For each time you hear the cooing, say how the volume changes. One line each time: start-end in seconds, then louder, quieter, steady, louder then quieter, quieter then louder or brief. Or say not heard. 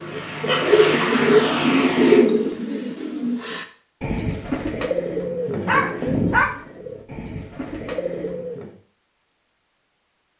0.0-8.7 quieter.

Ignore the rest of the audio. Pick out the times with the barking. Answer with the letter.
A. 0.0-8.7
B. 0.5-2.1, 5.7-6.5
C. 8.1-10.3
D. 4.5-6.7
B.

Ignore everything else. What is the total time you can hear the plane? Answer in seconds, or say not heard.
2 s.